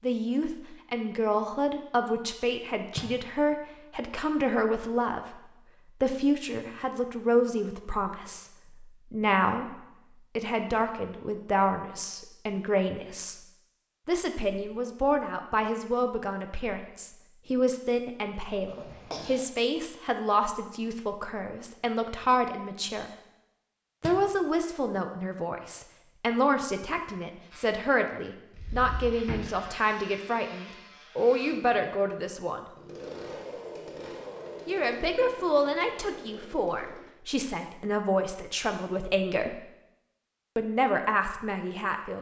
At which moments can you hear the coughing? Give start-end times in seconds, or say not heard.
18.6-19.4.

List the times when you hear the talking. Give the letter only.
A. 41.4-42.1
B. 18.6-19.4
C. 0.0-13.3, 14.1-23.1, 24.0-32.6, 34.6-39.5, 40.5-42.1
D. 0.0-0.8
C.